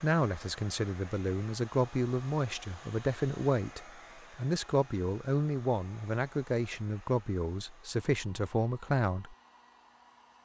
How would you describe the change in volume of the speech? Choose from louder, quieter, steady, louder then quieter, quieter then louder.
steady.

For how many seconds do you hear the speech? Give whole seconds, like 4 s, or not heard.
9 s.